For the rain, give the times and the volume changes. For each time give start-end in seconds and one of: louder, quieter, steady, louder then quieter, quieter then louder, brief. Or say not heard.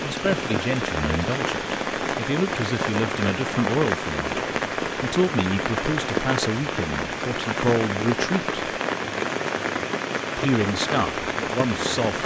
0.0-12.2 steady.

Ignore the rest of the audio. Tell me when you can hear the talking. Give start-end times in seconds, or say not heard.
0.0-8.6, 10.3-12.2.